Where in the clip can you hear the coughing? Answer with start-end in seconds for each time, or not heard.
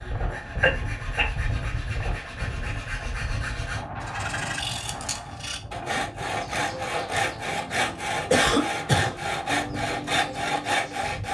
0.6-1.3, 8.3-9.2.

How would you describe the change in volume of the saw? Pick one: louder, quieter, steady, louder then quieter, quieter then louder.
louder.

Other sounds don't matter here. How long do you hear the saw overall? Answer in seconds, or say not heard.
11 s.